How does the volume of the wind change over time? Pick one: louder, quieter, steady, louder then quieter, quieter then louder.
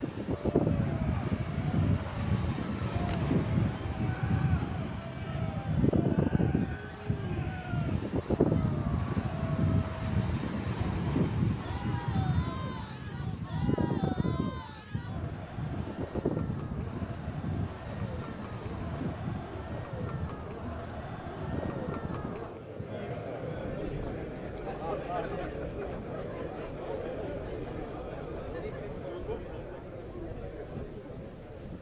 quieter.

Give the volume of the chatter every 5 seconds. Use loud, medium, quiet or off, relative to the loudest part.
medium, medium, medium, medium, loud, loud, medium.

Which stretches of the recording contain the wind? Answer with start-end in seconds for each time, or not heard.
0.0-31.7.